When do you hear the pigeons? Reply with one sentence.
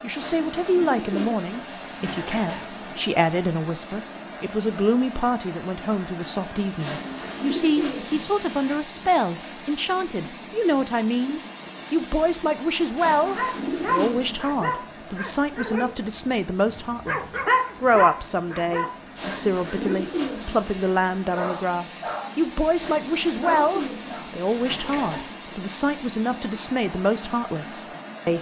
You can hear the pigeons from 0.1 to 3.0 s, from 6.8 to 8.8 s, from 12.9 to 14.5 s, from 19.1 to 21.0 s and from 22.8 to 25.3 s.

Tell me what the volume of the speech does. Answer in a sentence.
The loudness of the speech stays about the same.